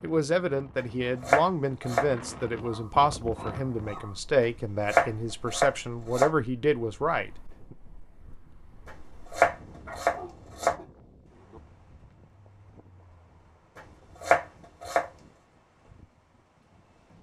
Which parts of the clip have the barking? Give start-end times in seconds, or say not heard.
2.6-4.2, 9.8-11.6.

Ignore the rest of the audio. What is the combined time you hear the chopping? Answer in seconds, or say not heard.
6 s.